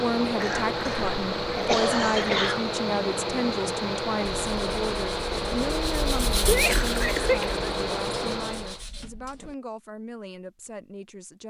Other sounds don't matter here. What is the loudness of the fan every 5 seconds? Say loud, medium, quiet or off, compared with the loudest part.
loud, loud, off.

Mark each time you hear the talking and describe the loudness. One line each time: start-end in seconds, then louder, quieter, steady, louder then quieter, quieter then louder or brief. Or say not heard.
0.0-11.4 quieter.